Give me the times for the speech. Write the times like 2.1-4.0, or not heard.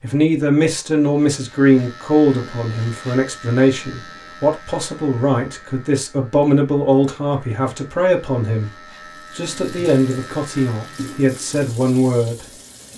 0.0-8.7, 9.3-12.4.